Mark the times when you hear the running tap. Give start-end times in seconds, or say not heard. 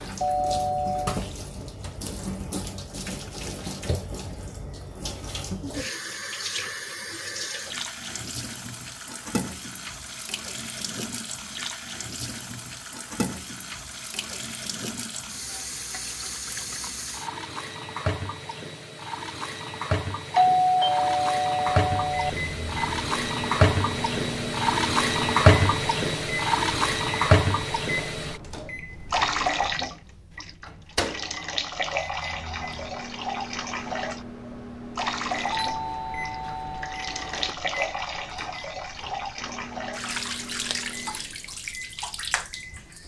0.0-43.0.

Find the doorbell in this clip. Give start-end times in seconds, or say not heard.
0.2-1.2, 20.4-22.3, 35.5-37.5.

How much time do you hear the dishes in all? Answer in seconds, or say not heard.
not heard.